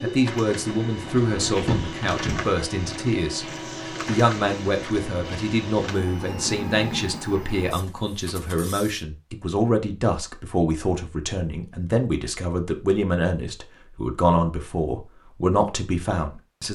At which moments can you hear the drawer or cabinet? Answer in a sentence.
You can hear the drawer or cabinet from 1.2 to 2.4 s.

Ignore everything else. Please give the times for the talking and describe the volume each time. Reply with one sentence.
The talking can be heard from 0.0 to 16.7 s, at a steady volume.